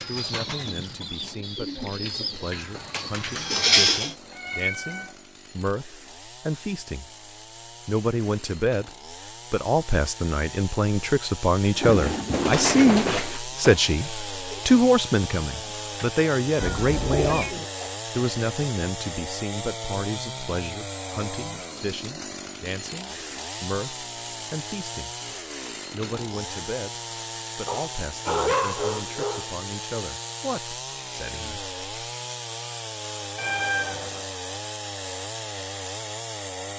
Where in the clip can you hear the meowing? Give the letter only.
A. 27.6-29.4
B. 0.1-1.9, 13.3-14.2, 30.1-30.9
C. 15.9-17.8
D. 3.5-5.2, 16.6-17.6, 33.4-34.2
D.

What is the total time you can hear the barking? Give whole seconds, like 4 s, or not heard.
2 s.